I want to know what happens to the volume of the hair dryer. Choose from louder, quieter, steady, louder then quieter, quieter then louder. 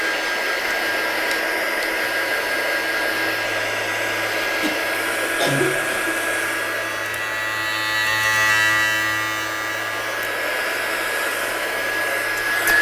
quieter then louder.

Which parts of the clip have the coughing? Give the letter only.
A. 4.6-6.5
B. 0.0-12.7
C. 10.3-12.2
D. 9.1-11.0
A.